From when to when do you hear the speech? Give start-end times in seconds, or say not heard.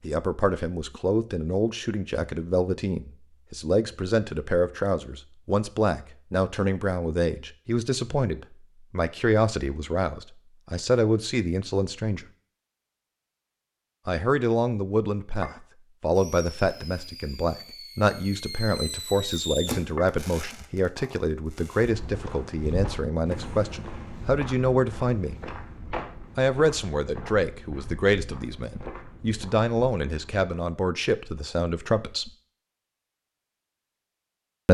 0.0-12.2, 14.1-25.4, 26.4-32.3.